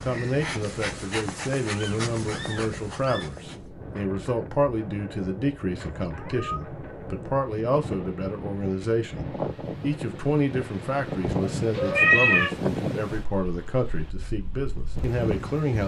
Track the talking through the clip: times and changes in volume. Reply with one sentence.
You can hear the talking from 0.0 to 15.8 s, at a steady volume.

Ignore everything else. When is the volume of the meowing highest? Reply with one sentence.
The volume of the meowing peaks at 12 seconds.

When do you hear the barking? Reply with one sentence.
You can't hear the barking here.